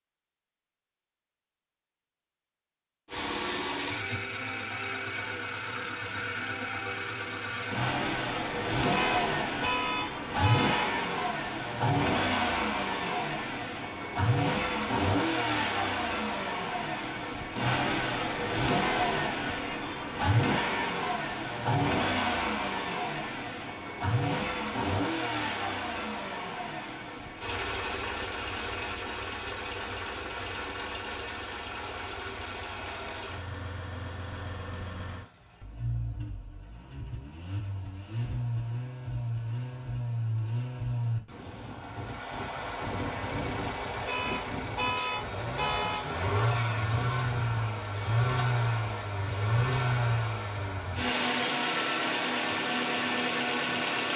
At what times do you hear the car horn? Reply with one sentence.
The car horn can be heard from 8.9 to 10.9 s and from 44.0 to 46.0 s.